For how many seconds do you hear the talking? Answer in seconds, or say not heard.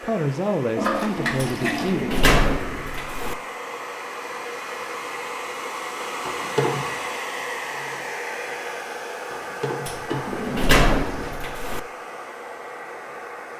2 s.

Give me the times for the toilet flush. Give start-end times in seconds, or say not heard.
0.8-1.9, 6.2-7.0, 9.3-11.3.